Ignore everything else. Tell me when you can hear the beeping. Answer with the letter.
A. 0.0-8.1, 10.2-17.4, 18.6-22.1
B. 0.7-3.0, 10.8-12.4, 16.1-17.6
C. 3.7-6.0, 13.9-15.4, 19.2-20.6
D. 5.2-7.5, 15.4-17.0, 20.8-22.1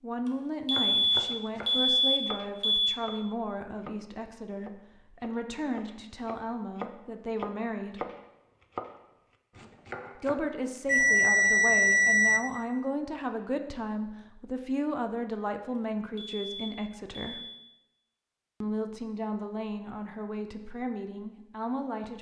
B.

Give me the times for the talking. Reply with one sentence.
The talking can be heard from 0.0 to 8.1 s, from 10.2 to 17.4 s and from 18.6 to 22.1 s.